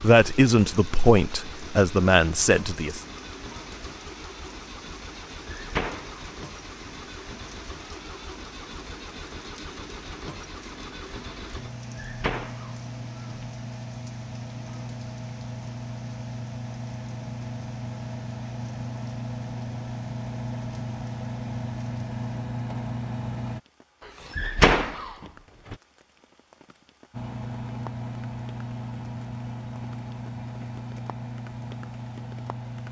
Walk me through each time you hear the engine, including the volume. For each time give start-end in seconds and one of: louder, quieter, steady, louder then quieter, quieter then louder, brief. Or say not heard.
0.0-23.6 louder
27.1-32.8 steady.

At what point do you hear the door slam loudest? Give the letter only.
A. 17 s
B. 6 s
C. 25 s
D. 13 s
C.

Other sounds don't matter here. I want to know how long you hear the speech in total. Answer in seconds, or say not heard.
3 s.